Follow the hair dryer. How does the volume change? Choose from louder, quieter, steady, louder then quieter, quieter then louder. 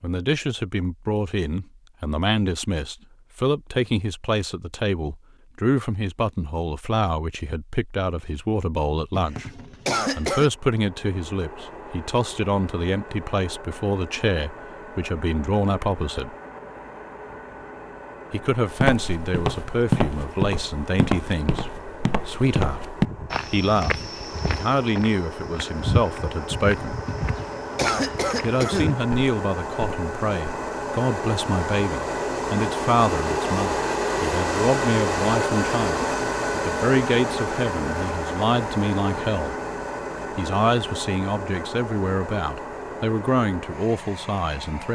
louder then quieter.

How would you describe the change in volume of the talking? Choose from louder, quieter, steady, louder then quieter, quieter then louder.
steady.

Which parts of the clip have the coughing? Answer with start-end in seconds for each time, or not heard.
9.1-10.5, 27.1-29.0.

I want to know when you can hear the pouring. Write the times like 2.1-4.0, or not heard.
not heard.